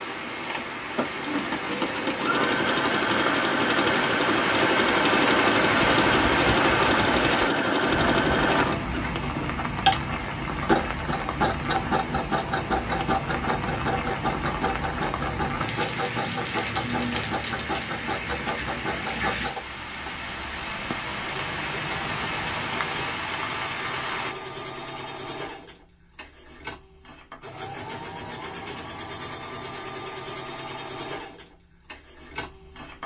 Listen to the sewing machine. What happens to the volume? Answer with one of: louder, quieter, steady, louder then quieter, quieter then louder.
quieter.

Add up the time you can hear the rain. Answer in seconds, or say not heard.
24 s.